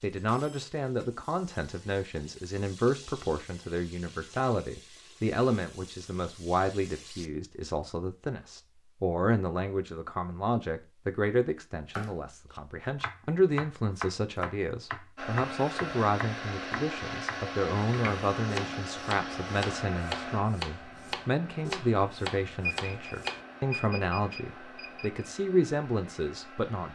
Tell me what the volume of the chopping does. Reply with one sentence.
The volume of the chopping stays about the same.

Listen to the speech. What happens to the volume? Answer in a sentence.
The loudness of the speech stays about the same.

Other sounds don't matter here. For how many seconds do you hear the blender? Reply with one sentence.
You can hear the blender for 12 seconds altogether.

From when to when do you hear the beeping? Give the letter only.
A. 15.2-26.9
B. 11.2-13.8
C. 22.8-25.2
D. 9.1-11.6
C.